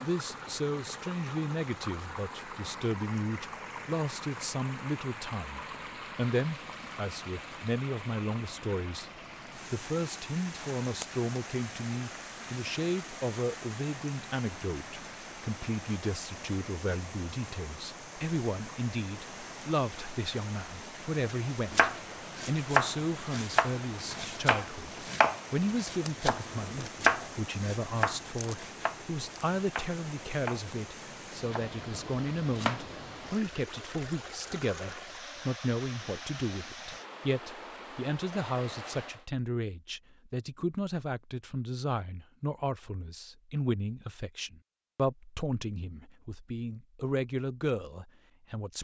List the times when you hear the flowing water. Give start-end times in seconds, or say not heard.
0.0-39.2.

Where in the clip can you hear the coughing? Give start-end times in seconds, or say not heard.
not heard.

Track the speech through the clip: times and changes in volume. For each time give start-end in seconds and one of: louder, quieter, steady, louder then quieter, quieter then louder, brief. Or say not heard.
0.0-48.8 steady.